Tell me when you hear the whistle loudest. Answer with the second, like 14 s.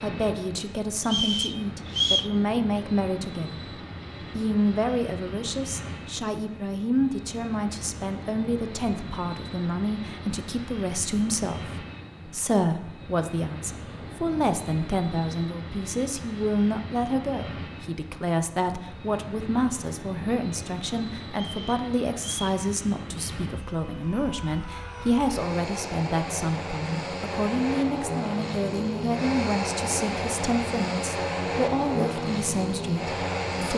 2 s.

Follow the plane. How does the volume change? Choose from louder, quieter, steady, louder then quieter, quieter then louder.
louder.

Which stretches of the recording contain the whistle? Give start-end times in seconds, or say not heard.
1.1-2.4, 21.3-22.6.